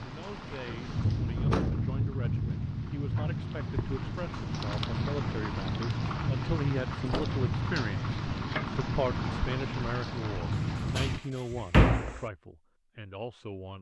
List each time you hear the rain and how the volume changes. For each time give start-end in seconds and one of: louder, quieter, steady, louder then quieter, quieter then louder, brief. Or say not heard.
0.0-11.2 steady.